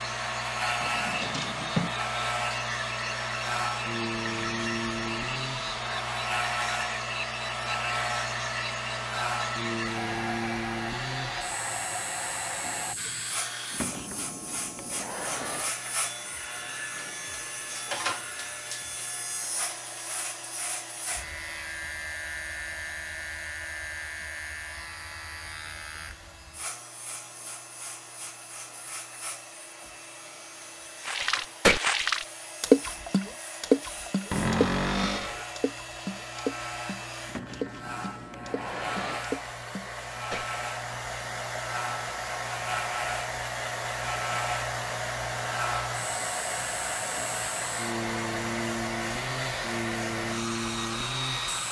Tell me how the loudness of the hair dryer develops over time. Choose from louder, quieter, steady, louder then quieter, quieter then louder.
quieter then louder.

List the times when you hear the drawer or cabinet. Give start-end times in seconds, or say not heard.
0.8-1.9, 34.3-35.5.